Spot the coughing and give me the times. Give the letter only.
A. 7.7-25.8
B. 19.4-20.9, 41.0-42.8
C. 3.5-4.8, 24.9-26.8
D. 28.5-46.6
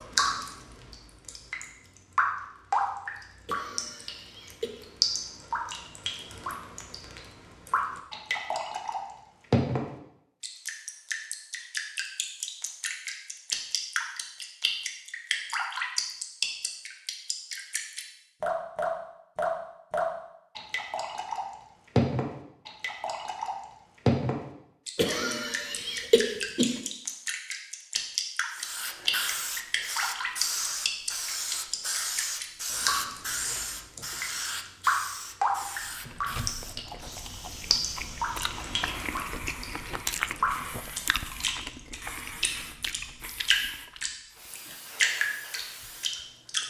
C.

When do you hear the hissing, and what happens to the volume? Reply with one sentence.
The hissing can be heard from 28.5 to 46.6 s, getting quieter.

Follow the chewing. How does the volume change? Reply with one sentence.
The loudness of the chewing goes up, then down.